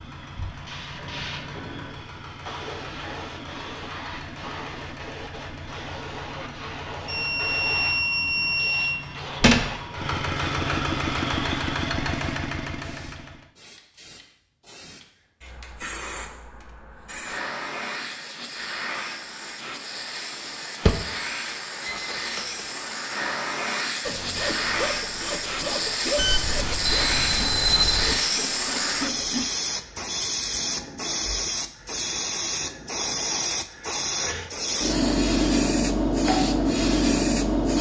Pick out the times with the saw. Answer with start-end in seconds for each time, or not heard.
24.1-29.4.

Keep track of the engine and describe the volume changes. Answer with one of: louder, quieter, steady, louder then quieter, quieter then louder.
louder.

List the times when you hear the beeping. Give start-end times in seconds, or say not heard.
7.0-9.0, 21.9-22.6, 26.1-28.2.